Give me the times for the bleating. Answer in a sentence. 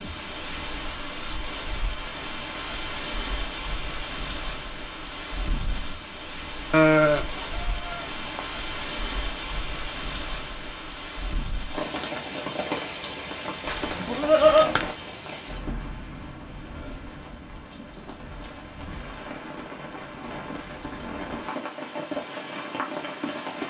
You can hear the bleating from 6.7 to 8.4 s and from 13.7 to 14.9 s.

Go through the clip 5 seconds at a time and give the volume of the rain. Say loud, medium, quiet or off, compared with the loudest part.
loud, loud, loud, medium, loud.